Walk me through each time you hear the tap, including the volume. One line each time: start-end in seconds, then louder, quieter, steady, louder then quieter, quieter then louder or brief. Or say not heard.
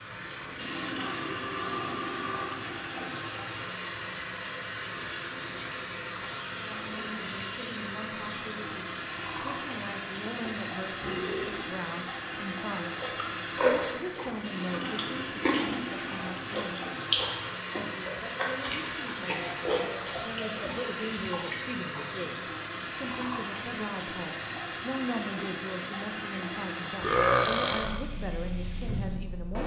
0.0-29.6 steady.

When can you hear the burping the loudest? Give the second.
27 s.